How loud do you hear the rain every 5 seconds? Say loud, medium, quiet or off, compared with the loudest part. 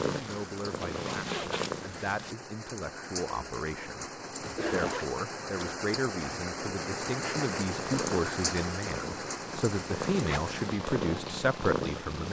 medium, loud, medium.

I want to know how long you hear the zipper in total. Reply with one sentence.
The zipper can be heard for 3 seconds in total.